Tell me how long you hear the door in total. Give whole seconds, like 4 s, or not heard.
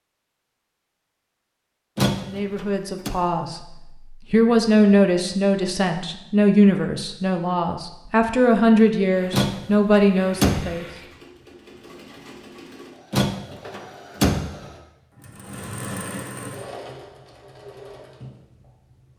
4 s.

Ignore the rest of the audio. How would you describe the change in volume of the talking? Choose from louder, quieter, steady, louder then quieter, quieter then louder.
louder.